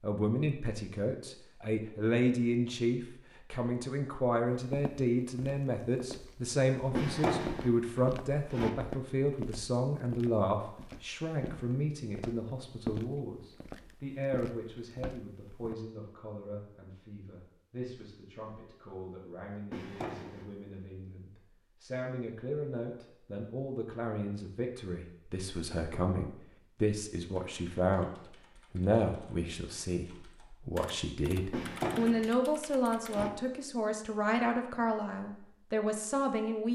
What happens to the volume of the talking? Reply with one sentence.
The loudness of the talking goes down, then up.